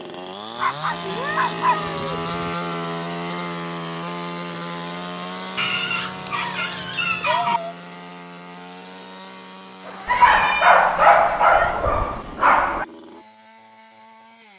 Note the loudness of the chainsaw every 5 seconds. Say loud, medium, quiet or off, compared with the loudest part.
loud, medium, quiet.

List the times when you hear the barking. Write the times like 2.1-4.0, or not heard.
0.6-2.5, 5.5-7.6, 10.1-12.8.